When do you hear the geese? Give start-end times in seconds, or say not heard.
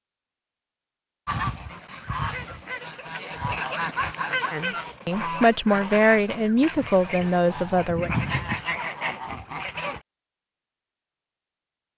1.2-10.0.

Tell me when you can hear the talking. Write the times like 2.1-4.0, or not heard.
4.5-8.1.